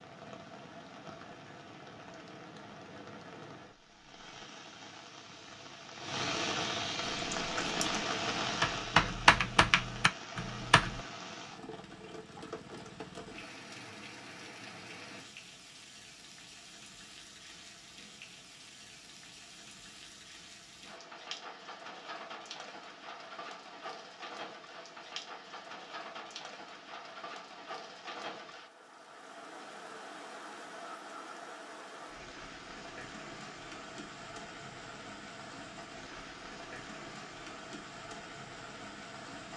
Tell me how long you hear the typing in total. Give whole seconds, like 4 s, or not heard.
4 s.